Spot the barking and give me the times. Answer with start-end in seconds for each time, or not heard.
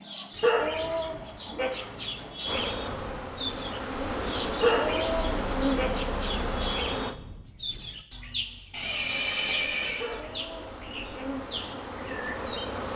0.4-1.7, 4.6-5.9, 10.0-11.3.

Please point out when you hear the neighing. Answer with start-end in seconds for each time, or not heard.
0.3-2.4, 5.1-6.9, 8.7-10.1.